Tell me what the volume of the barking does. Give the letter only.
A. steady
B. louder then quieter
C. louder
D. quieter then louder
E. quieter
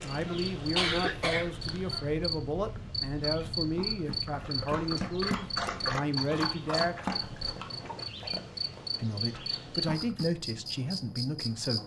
B.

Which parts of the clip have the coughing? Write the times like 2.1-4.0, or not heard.
0.2-2.0.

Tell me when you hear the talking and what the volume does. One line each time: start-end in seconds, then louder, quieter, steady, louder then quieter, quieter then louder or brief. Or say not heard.
0.0-7.0 steady
9.0-11.8 brief.